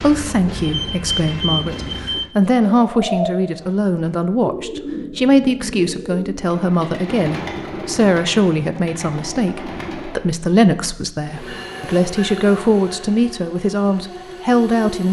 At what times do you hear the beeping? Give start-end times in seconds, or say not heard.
0.6-2.2.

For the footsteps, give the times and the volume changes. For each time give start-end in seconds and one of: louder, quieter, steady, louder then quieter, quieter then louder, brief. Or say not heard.
not heard.